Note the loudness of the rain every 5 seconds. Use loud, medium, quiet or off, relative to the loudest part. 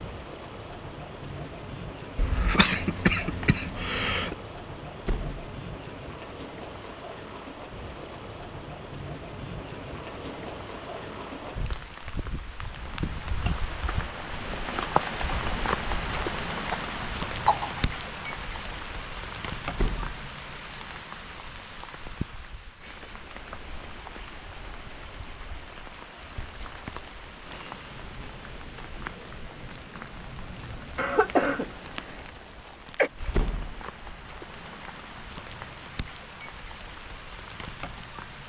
medium, medium, loud, loud, medium, medium, medium, medium.